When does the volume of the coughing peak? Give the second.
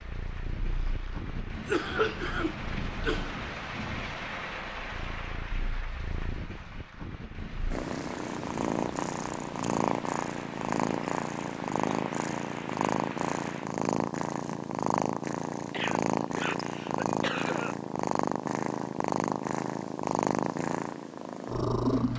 2 s.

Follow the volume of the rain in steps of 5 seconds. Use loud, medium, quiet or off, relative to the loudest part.
loud, medium, medium, off, off.